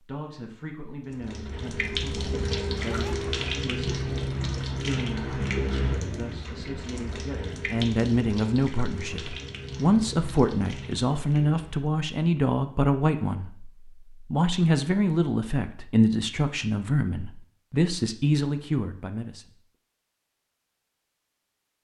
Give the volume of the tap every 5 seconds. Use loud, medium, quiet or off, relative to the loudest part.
loud, loud, medium, off, off.